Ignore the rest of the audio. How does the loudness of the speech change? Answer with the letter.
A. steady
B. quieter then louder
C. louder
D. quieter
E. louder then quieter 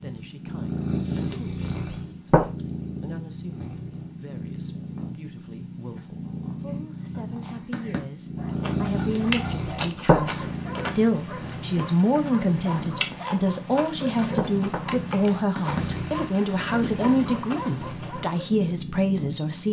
C.